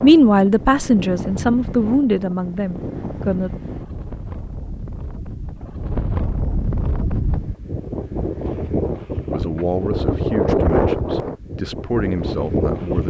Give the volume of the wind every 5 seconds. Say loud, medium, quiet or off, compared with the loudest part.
medium, medium, loud.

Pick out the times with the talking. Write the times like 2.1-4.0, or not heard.
0.0-3.5, 9.2-13.0.